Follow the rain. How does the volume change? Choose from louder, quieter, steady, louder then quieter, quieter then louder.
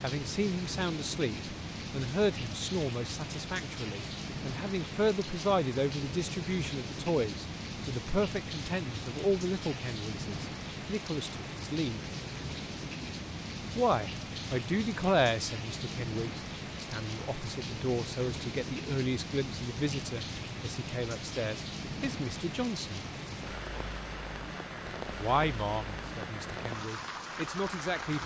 steady.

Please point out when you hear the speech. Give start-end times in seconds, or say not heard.
0.0-12.1, 13.8-23.1, 25.1-28.2.